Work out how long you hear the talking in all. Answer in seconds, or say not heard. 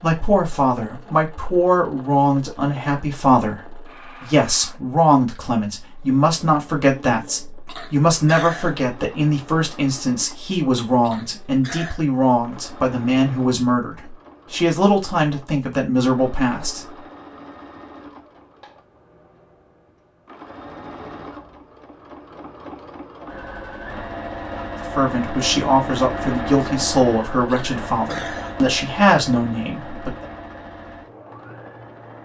22 s.